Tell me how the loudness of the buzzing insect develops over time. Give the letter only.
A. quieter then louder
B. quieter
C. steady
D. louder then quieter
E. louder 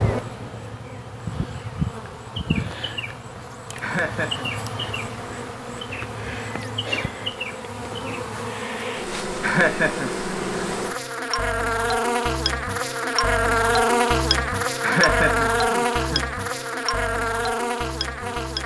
E.